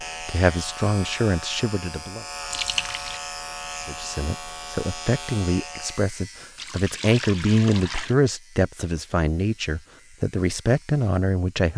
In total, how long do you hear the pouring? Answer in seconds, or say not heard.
2 s.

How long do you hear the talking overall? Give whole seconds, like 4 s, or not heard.
10 s.